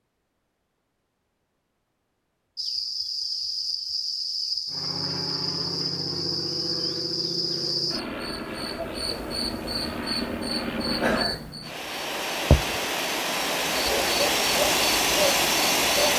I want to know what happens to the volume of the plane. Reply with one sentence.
The volume of the plane goes up.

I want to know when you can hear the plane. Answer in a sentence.
The plane can be heard from 4.7 to 16.1 s.